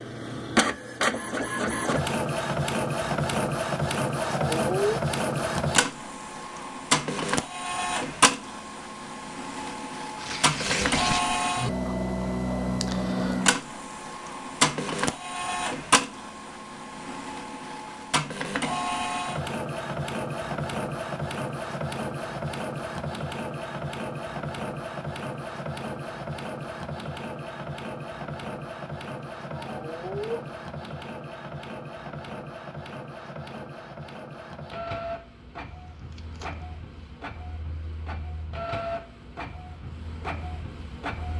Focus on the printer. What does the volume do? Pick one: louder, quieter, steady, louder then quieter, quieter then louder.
quieter.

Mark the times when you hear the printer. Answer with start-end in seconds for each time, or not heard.
0.0-41.3.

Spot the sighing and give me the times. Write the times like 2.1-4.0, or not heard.
4.3-5.0, 29.5-30.4.